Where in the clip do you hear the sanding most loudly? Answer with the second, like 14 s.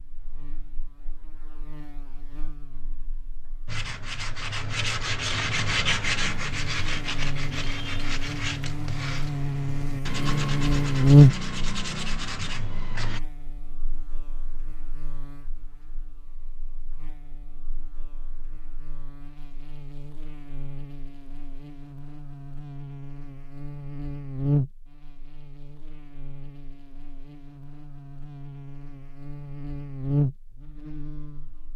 6 s.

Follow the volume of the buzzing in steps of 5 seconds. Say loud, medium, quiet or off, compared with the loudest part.
quiet, quiet, loud, quiet, quiet, quiet, medium.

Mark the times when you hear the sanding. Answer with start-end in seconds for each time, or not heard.
3.6-13.2.